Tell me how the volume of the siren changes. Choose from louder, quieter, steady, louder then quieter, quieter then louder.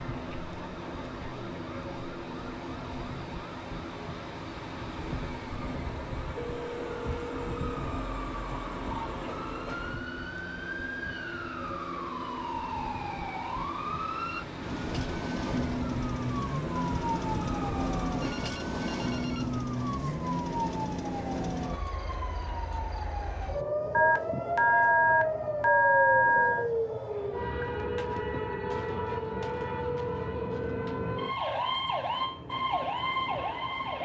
louder.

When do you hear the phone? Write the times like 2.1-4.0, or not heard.
6.3-7.8, 18.2-20.1, 23.9-26.6.